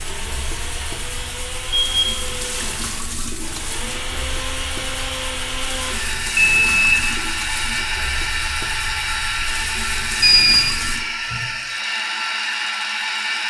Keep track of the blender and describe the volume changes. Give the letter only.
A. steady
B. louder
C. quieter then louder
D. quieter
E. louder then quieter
B.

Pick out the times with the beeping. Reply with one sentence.
You can hear the beeping from 1.7 to 2.6 s, from 6.3 to 7.0 s and from 10.2 to 10.8 s.